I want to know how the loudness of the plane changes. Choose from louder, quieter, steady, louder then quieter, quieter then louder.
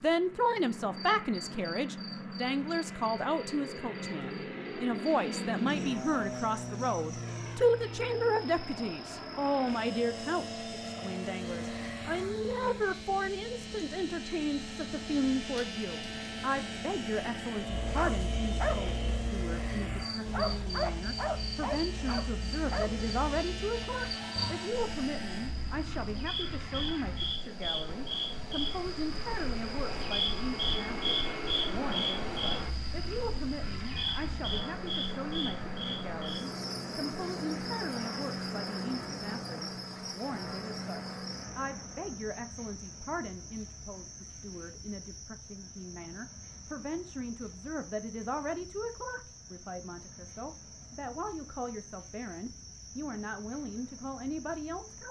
steady.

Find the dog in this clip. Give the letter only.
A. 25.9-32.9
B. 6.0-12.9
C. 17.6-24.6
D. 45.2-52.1
C.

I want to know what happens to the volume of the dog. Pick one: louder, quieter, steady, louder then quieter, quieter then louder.
quieter.